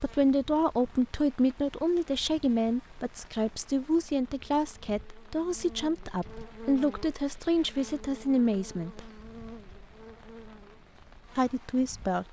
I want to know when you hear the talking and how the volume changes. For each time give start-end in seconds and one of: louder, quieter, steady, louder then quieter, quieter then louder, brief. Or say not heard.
0.0-9.1 steady
11.3-12.2 brief.